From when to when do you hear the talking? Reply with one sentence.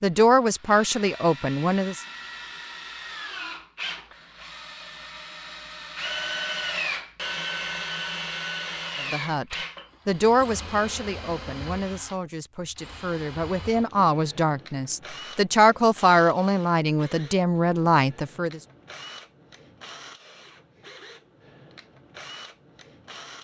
You can hear the talking from 0.0 to 2.0 s and from 9.1 to 18.6 s.